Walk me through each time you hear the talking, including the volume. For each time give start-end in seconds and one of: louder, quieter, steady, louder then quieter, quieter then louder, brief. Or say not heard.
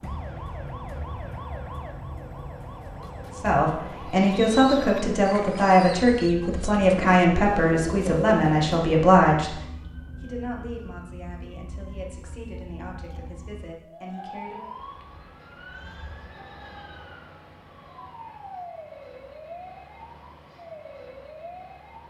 3.4-14.7 quieter.